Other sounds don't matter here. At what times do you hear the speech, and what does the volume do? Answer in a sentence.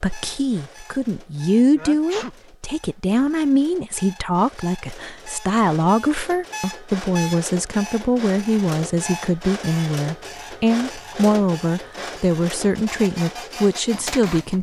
You can hear the speech from 0.0 to 14.5 s, at a steady volume.